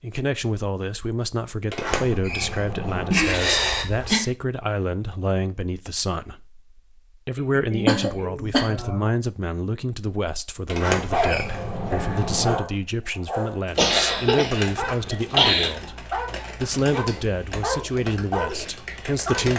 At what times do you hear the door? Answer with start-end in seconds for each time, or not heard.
1.6-3.2, 10.7-12.6.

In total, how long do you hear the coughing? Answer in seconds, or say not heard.
5 s.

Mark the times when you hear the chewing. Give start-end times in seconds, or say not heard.
not heard.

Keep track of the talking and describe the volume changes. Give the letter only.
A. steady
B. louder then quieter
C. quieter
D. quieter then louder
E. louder
A.